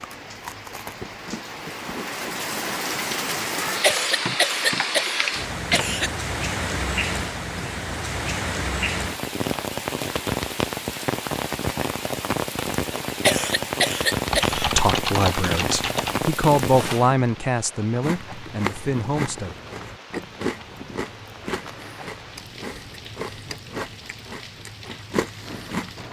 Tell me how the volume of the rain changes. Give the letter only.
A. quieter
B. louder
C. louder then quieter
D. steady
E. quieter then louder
A.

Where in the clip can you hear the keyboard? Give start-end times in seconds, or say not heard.
3.9-5.8, 14.3-16.2.